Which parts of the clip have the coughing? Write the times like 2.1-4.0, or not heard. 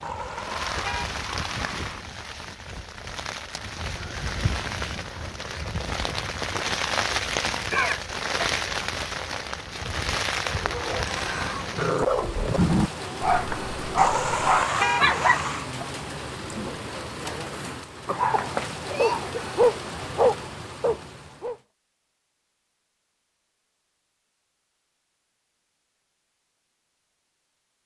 7.7-8.5, 18.1-19.4.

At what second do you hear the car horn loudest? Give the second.
15 s.